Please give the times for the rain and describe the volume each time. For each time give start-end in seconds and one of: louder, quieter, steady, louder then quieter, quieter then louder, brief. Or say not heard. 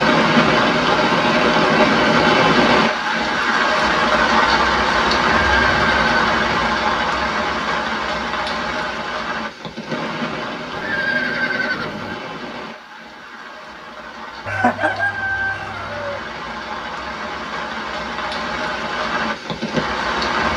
0.0-20.5 quieter then louder.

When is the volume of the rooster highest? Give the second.
15 s.